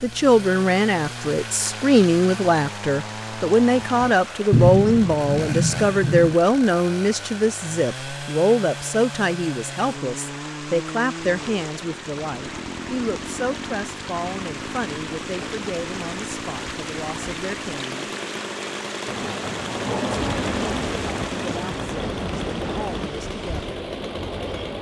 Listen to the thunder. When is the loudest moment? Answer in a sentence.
The volume of the thunder peaks at 5 seconds.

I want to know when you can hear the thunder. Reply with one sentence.
You can hear the thunder from 4.5 to 6.3 s and from 19.1 to 23.1 s.